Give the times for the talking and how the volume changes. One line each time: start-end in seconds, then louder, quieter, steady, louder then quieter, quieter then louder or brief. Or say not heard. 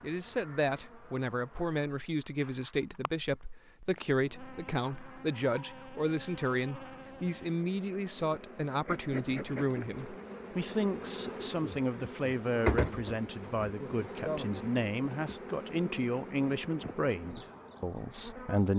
0.0-18.7 steady.